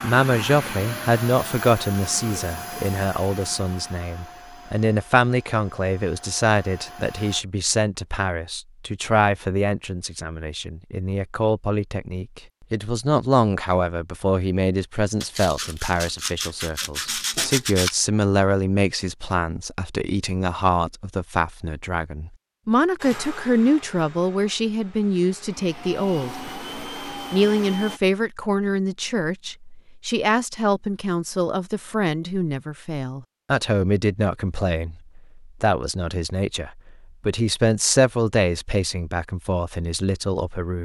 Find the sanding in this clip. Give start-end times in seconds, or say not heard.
15.2-17.9.